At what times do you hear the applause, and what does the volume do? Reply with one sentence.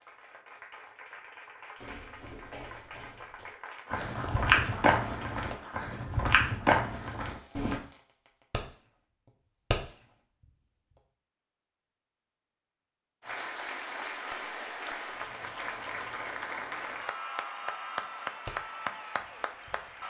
The applause can be heard from 0.0 to 5.8 s, getting louder; and from 13.2 to 20.0 s, at a steady volume.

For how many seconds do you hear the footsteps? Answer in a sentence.
You can hear the footsteps for 6 seconds altogether.